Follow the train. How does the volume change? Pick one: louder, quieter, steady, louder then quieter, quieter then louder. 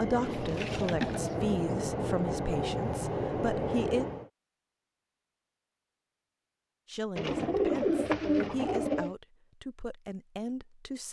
steady.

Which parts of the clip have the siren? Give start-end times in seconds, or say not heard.
not heard.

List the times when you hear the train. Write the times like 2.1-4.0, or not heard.
0.0-4.3.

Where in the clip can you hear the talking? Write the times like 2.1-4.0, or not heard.
0.0-4.0, 6.8-11.0.